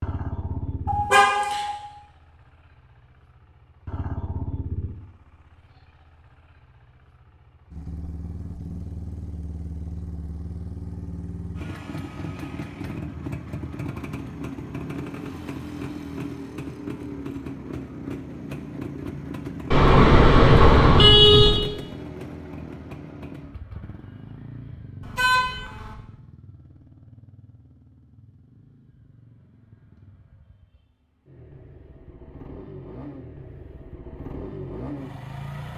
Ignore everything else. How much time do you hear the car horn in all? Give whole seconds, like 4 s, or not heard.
4 s.